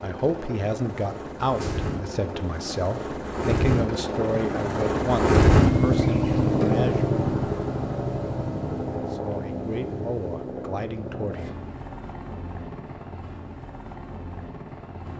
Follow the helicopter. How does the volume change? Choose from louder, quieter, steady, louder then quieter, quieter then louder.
louder then quieter.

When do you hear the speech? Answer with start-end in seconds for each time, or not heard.
0.0-7.1, 9.1-11.6.